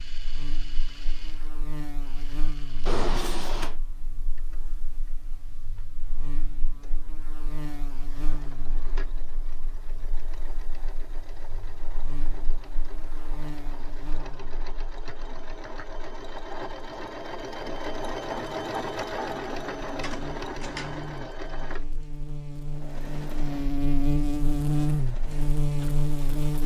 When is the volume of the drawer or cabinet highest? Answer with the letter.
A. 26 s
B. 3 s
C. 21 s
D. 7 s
B.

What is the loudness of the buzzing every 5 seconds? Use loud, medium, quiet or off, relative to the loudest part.
quiet, quiet, quiet, quiet, loud, loud.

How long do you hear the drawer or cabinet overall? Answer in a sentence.
The drawer or cabinet can be heard for 2 seconds in total.